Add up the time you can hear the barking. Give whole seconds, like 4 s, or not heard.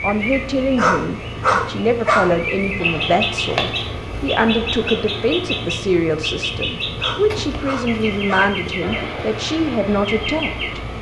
3 s.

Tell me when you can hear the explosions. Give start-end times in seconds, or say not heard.
not heard.